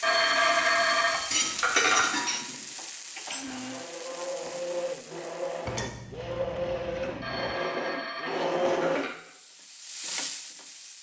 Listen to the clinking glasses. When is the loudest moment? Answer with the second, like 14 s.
2 s.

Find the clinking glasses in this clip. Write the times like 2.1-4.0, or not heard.
1.3-2.6, 5.7-7.5.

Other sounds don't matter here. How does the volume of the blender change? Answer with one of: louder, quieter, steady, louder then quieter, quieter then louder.
louder.